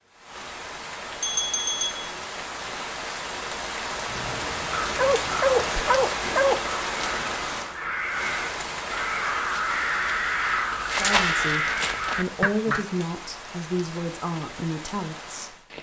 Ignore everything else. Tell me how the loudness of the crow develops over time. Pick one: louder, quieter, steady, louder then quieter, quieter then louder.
louder.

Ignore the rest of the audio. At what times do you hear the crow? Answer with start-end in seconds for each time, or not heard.
4.0-12.8.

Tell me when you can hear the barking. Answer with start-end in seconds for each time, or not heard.
5.0-6.7.